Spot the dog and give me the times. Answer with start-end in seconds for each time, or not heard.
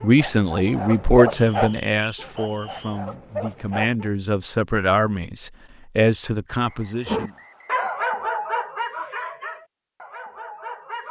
0.0-4.0, 7.0-11.0.